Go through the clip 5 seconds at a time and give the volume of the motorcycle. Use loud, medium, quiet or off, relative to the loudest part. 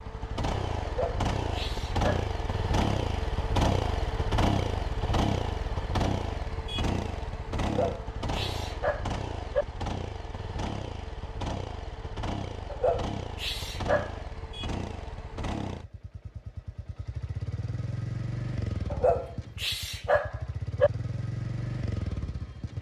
loud, loud, medium, medium, medium.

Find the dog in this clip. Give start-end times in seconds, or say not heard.
0.8-2.3, 7.6-9.7, 12.7-14.2, 18.9-20.9.